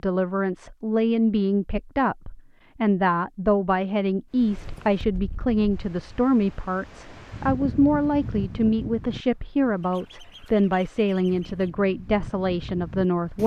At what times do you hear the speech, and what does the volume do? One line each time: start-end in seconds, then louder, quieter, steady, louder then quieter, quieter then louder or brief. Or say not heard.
0.0-13.4 steady.